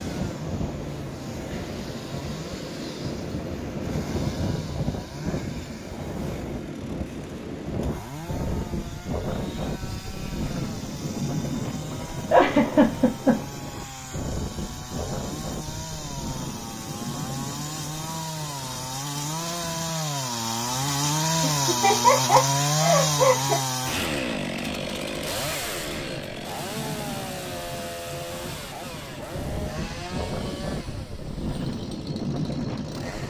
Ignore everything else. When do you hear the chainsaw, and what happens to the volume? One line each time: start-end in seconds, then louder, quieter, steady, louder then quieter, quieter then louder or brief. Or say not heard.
0.0-33.2 louder then quieter.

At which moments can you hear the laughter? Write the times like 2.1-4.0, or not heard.
12.3-13.4, 21.4-23.6.